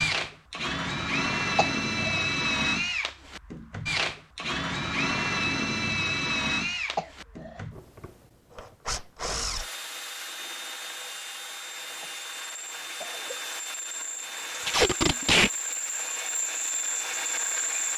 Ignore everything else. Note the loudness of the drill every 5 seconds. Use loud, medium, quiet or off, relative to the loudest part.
loud, loud, medium, loud.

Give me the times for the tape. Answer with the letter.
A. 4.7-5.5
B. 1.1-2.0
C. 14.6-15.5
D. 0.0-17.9
C.